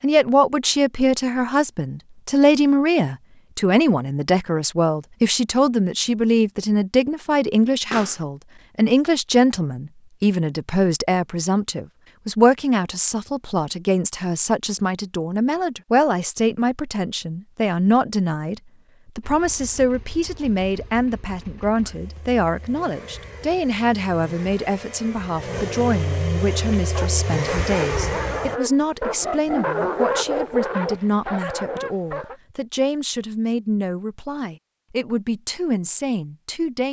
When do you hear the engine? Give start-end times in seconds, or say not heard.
19.2-28.6.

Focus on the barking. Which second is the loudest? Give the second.
30 s.